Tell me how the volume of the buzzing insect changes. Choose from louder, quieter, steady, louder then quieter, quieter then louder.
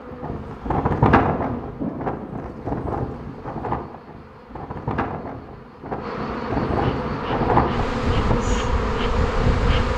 quieter then louder.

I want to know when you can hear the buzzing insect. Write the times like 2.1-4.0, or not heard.
0.0-9.9.